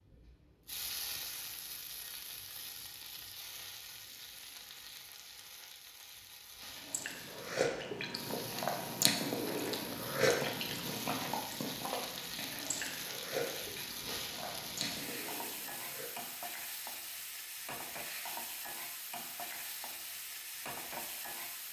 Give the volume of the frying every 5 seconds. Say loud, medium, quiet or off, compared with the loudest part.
loud, medium, loud, loud, loud.